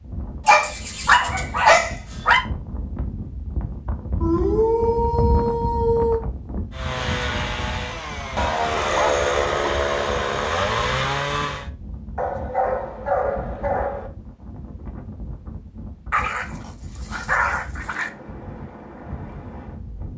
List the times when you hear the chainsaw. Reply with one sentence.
The chainsaw can be heard from 6.7 to 11.7 s.